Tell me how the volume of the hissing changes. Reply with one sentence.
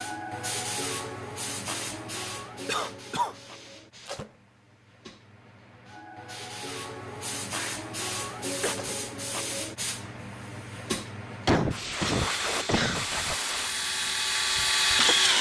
The volume of the hissing goes down, then up.